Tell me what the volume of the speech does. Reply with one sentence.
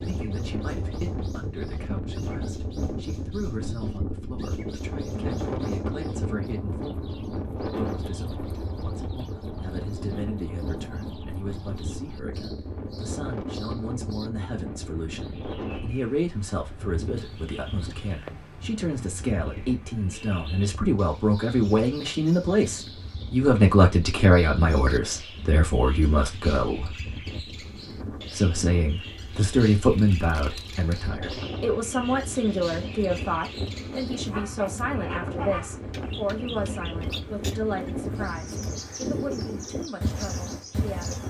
The loudness of the speech goes up, then down.